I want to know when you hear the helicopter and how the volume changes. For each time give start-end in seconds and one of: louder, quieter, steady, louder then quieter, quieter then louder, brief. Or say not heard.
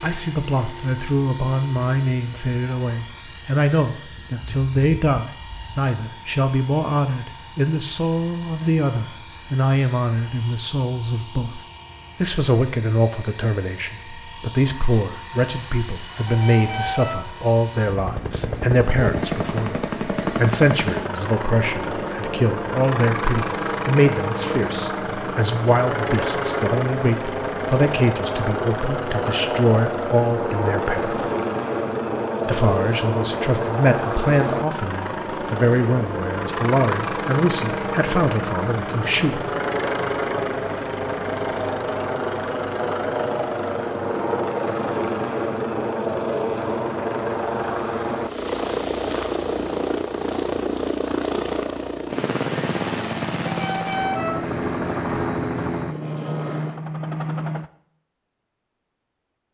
0.0-57.7 steady.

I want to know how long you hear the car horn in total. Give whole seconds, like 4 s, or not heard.
3 s.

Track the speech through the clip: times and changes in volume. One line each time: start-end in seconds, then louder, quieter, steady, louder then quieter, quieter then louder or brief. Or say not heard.
0.0-11.6 steady
12.2-31.2 steady
32.5-39.5 steady.